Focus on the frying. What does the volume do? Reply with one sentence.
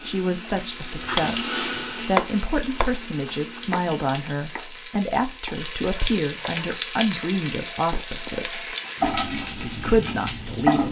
The loudness of the frying goes up.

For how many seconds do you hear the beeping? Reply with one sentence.
The beeping can be heard for 2 seconds in total.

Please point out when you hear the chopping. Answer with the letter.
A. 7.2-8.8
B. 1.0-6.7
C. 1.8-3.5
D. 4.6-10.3
B.